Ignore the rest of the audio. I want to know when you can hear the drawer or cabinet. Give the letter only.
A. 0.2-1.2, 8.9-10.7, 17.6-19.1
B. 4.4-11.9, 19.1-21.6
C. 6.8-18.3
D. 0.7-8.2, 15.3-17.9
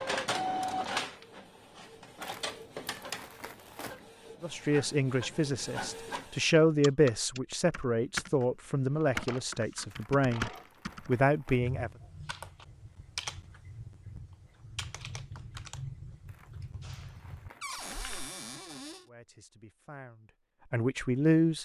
A.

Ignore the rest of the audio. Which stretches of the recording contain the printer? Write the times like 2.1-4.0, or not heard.
0.0-6.4.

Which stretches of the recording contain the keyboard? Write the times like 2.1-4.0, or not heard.
6.8-18.3.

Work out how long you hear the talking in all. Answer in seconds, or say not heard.
10 s.